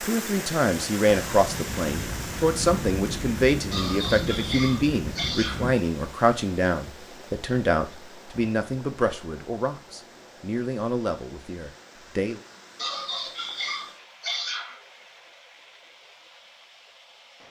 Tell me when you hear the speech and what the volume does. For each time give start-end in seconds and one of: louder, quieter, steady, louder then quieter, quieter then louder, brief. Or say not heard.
0.0-12.4 quieter.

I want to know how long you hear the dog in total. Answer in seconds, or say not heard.
4 s.